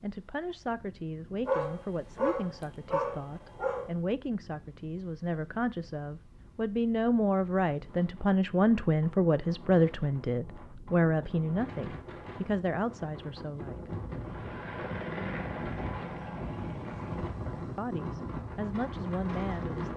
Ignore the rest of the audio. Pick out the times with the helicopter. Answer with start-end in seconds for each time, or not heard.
14.2-17.2.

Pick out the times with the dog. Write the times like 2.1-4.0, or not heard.
1.4-3.9.